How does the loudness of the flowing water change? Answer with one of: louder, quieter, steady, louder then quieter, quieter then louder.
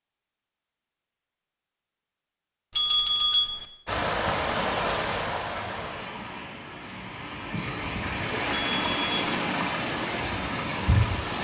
quieter then louder.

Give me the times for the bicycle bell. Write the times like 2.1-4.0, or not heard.
2.8-3.6, 8.5-9.2.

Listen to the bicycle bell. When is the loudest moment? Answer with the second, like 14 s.
3 s.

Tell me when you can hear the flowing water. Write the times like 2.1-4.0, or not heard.
3.9-11.3.